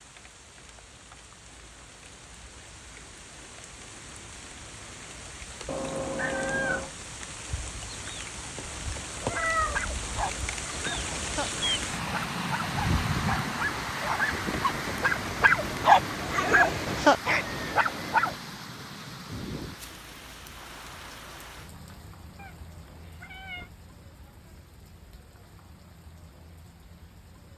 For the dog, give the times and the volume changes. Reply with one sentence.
The dog can be heard from 9.2 to 18.4 s, getting louder.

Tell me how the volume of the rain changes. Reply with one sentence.
The volume of the rain goes up, then down.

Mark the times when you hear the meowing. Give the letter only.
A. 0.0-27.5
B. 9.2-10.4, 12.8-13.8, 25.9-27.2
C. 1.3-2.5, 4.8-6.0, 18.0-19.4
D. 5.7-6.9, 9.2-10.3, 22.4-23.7
D.